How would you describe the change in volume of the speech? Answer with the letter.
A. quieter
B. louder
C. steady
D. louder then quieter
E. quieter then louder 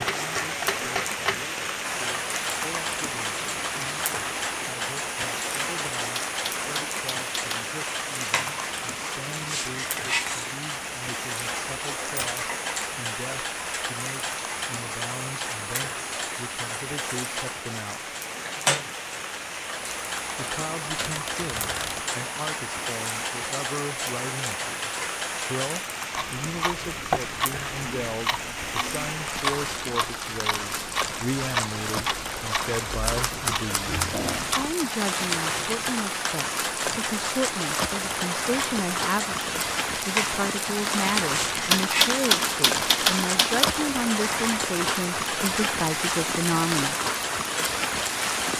B.